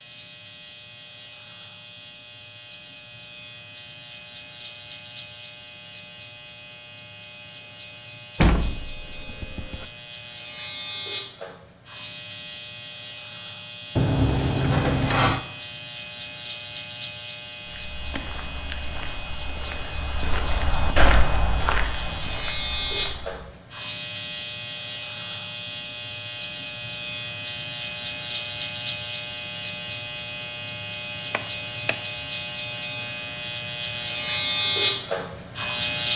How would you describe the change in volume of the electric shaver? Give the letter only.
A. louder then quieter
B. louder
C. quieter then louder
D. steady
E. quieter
B.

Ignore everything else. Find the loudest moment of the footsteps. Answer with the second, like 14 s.
21 s.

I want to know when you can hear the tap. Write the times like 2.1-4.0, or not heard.
not heard.